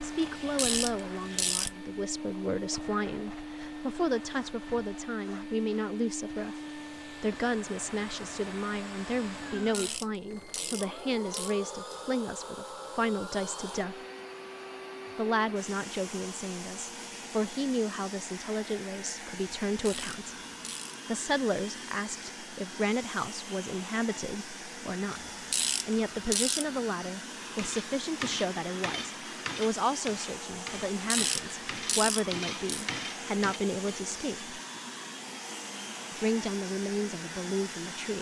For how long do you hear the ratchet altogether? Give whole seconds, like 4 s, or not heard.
8 s.